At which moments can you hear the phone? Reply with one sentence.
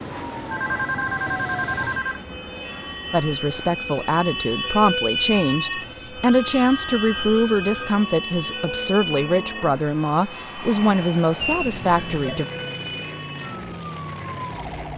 You can hear the phone from 0.5 to 2.2 s, from 6.2 to 8.0 s and from 11.3 to 12.4 s.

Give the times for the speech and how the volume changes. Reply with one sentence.
You can hear the speech from 3.1 to 12.4 s, at a steady volume.